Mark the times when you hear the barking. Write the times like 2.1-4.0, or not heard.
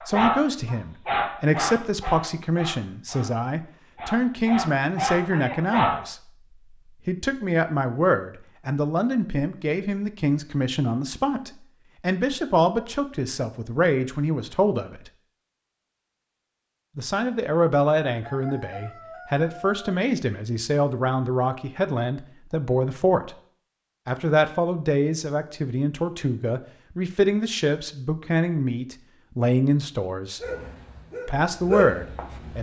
0.0-3.4, 4.0-6.0, 30.4-32.5.